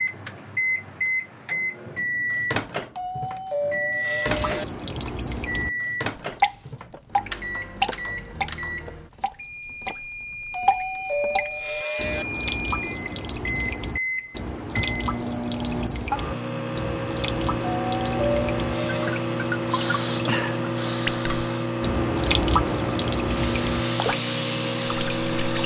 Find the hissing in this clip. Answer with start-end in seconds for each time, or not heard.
18.2-25.6.